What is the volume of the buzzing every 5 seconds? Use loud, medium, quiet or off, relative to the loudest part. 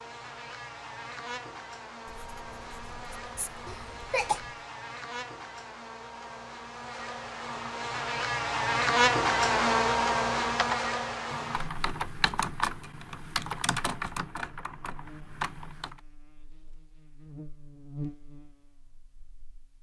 quiet, loud, loud, quiet.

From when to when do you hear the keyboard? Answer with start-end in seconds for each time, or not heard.
10.6-16.0.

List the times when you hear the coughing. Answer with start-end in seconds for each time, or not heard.
3.6-4.4.